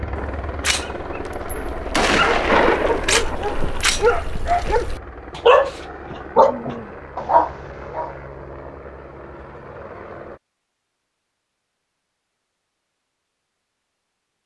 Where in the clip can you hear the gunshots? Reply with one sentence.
The gunshots can be heard from 0.1 to 4.0 s.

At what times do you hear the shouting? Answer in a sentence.
The shouting can't be heard in this clip.